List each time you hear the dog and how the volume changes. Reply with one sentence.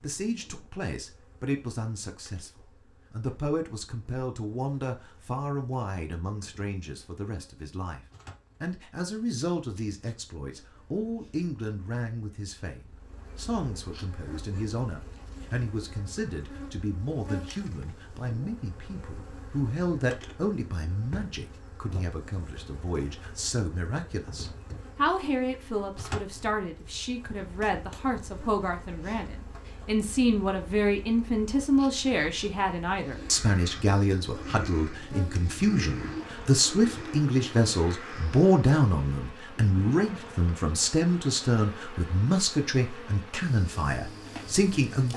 You can't hear the dog here.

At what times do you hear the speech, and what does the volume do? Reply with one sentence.
The speech can be heard from 0.0 to 45.1 s, getting louder.